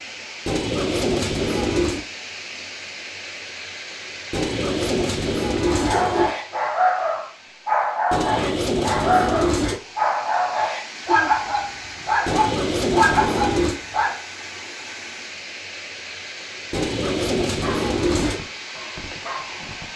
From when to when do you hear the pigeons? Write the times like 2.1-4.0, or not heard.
0.5-2.0, 4.3-6.3, 8.1-9.8, 12.2-13.8, 16.7-18.4.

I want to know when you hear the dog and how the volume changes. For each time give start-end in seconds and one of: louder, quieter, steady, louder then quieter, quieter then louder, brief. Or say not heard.
5.7-14.2 steady
17.5-19.9 brief.